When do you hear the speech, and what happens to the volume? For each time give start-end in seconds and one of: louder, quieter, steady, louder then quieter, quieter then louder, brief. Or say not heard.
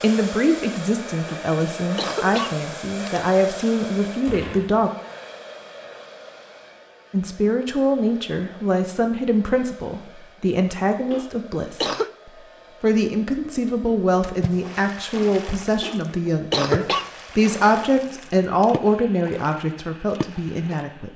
0.0-4.9 steady
7.1-21.1 steady.